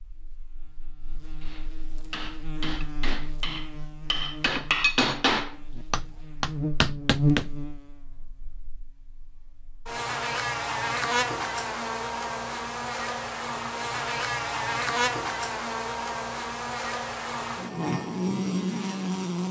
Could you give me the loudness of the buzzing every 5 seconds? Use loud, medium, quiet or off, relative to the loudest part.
quiet, loud, loud, loud.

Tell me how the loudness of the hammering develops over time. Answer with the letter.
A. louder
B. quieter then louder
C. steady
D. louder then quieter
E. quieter
A.